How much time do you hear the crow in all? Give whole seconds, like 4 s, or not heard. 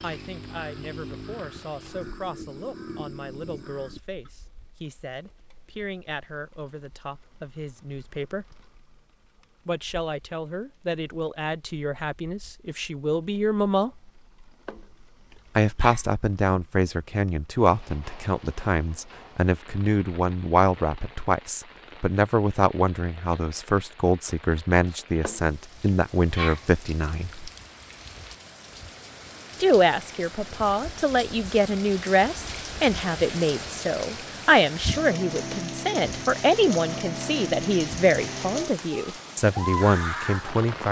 4 s.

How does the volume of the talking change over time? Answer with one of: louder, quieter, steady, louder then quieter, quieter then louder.
louder.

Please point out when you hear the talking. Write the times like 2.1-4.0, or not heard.
0.0-8.4, 9.7-13.9, 15.6-27.5, 29.6-40.8.